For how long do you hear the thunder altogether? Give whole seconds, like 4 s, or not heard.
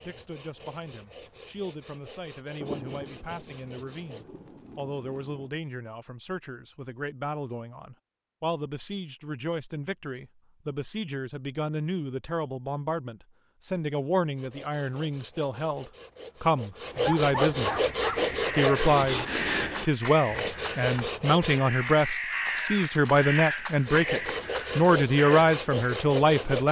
3 s.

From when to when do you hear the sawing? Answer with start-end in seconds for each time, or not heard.
0.0-4.2, 14.3-21.7, 23.9-26.6.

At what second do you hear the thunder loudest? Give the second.
3 s.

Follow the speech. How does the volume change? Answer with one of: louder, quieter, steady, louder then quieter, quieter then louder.
louder.